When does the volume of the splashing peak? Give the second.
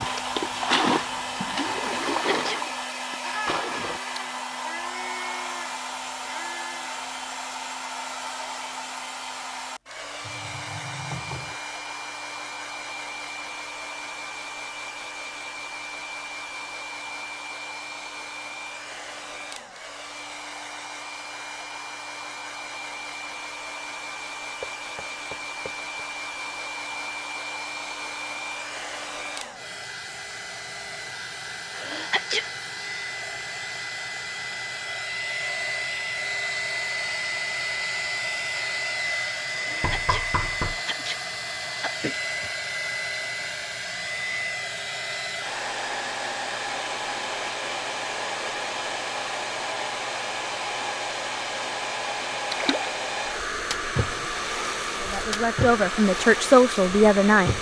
1 s.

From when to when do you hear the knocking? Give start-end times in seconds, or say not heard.
10.2-11.6, 24.6-25.8, 39.8-40.8.